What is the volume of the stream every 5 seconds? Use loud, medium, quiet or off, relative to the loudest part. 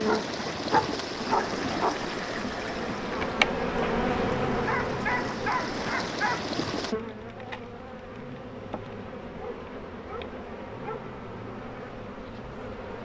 loud, loud, off.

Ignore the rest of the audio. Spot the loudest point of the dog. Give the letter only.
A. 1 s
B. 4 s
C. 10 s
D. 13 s
A.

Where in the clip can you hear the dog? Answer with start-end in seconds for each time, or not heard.
0.1-2.0, 4.7-6.5, 9.3-11.2.